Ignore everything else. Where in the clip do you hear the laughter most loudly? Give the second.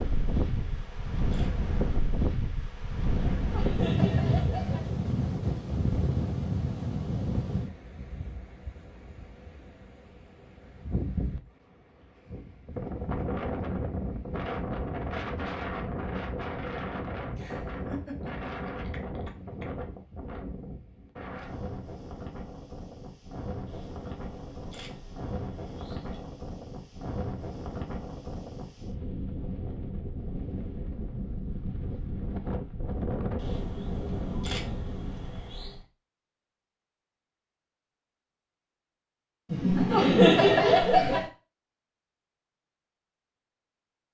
40 s.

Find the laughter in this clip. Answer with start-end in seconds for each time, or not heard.
3.2-4.8, 17.4-19.6, 39.5-41.2.